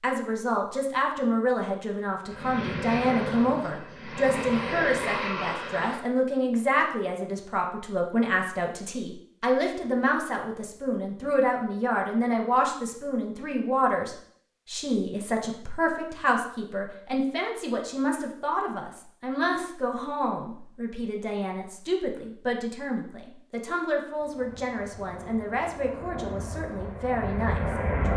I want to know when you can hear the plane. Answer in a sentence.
You can hear the plane from 2.2 to 6.0 s and from 24.2 to 28.1 s.